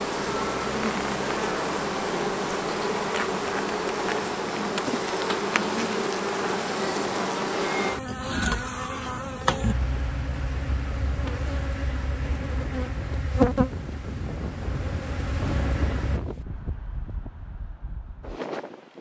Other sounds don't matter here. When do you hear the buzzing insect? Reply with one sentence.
The buzzing insect can be heard from 0.0 to 16.2 s.